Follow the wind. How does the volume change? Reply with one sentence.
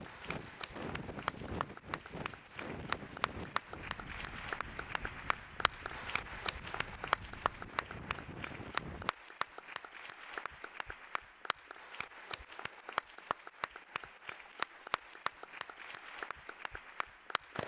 The loudness of the wind goes down, then up.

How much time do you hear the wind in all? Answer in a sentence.
The wind can be heard for 9 seconds in total.